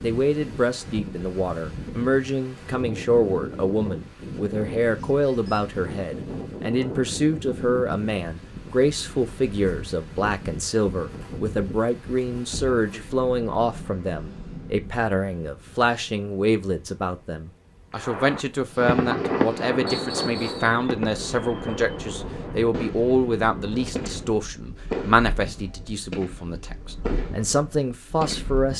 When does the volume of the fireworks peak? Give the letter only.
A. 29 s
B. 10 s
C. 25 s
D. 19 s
D.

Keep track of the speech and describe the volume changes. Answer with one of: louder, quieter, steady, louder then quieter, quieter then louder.
steady.